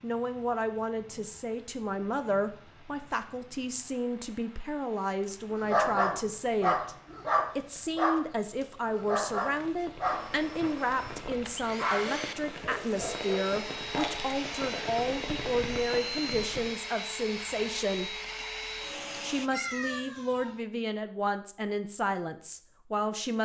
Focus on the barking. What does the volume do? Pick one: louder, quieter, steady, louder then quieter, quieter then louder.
quieter.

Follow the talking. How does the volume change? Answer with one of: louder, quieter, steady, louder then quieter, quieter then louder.
steady.